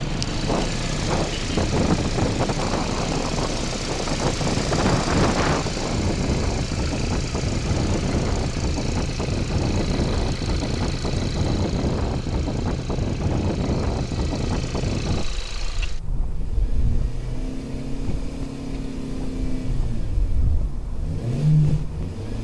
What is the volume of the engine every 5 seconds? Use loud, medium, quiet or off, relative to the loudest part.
medium, medium, quiet, medium, loud.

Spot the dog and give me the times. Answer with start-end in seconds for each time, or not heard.
not heard.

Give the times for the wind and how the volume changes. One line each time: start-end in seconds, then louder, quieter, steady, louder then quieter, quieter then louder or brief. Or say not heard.
0.0-22.3 quieter.